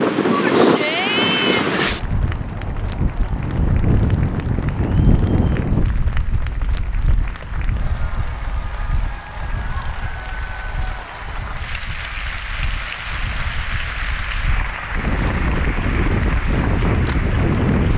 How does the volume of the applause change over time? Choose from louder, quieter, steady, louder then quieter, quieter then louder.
louder.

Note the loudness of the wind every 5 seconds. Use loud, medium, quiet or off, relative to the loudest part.
loud, medium, quiet, loud.